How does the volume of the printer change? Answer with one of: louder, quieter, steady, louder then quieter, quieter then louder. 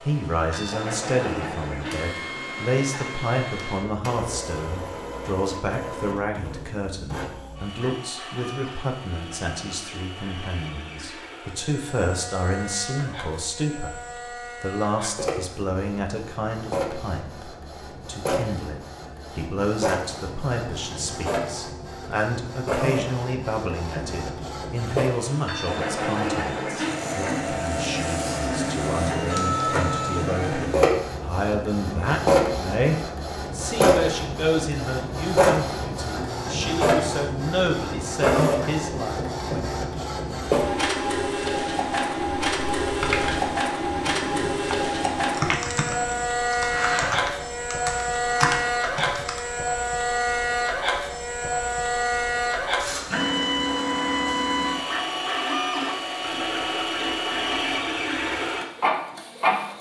louder.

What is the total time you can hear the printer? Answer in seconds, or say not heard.
60 s.